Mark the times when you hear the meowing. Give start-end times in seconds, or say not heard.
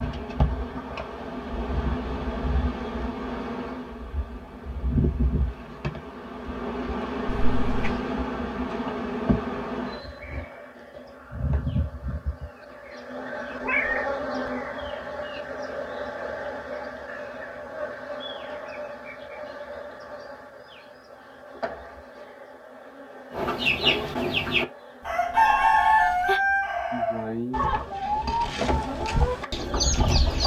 7.2-8.0, 13.6-14.5, 25.3-26.4.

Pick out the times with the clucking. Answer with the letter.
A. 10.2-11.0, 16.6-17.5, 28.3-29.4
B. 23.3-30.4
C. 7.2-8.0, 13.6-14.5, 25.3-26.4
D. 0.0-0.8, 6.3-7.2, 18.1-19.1
B.